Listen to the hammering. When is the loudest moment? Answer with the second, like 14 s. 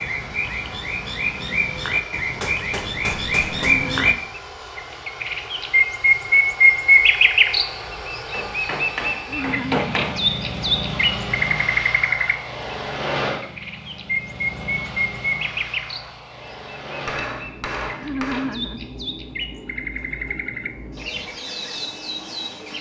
10 s.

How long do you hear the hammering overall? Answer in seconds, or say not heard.
5 s.